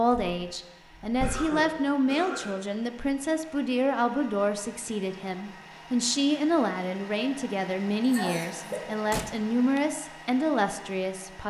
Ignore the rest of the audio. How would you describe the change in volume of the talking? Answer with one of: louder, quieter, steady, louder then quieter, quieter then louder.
steady.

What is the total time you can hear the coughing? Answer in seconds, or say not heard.
2 s.